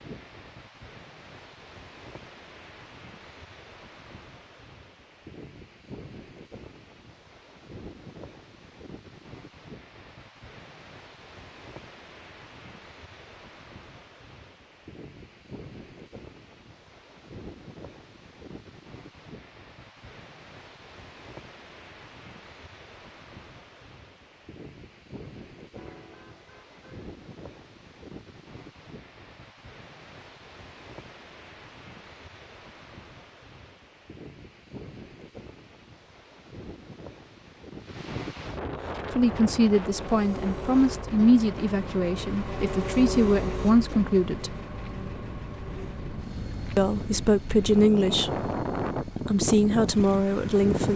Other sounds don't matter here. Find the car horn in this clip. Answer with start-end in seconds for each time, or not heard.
25.8-27.1.